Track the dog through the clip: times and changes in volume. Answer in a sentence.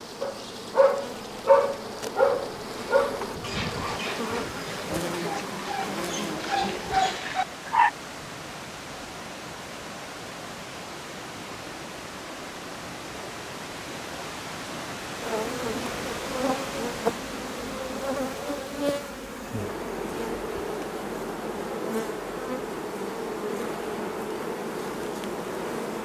The dog can be heard from 0.2 to 7.9 s, getting quieter then louder.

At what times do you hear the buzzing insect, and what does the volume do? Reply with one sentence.
You can hear the buzzing insect from 0.0 to 7.2 s, getting louder; and from 15.2 to 26.0 s, at a steady volume.